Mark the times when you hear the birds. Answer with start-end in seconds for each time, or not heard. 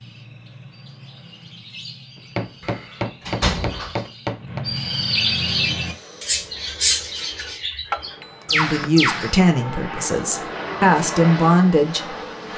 0.0-9.3.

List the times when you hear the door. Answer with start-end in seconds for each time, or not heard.
2.6-4.0.